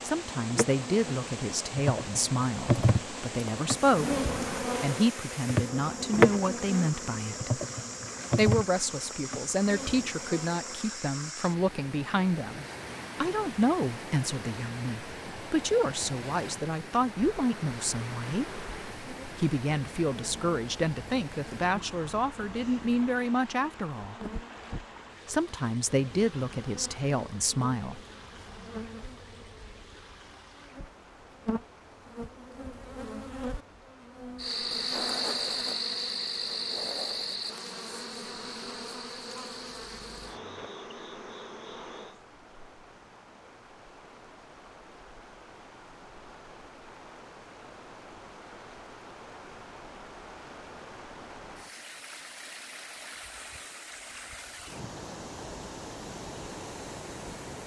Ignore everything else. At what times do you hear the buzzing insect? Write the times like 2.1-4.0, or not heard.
0.0-10.9, 17.0-42.2.